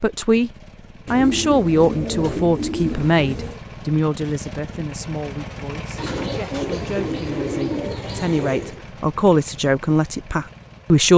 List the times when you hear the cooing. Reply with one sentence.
You can hear the cooing from 1.1 to 3.6 s and from 6.0 to 8.8 s.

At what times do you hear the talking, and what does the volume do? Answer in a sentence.
The talking can be heard briefly from 0.0 to 0.5 s; and from 1.1 to 11.1 s, getting quieter then louder.